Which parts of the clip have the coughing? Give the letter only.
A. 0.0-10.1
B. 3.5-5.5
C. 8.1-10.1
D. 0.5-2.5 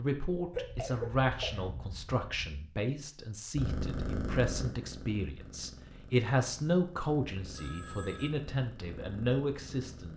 D.